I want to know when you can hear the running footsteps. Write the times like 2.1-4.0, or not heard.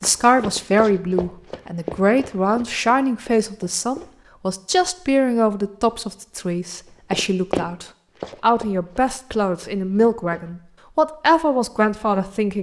0.0-4.0, 7.1-10.5.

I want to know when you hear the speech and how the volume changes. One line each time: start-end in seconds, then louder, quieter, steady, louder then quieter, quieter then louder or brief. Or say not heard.
0.0-12.5 steady.